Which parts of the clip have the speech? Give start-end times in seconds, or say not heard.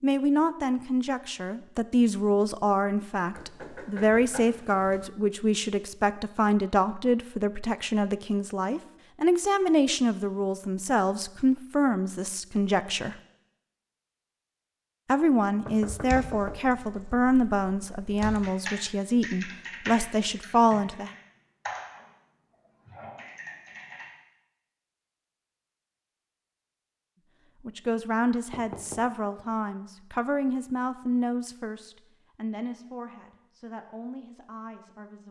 0.0-13.2, 15.1-21.1, 27.6-35.2.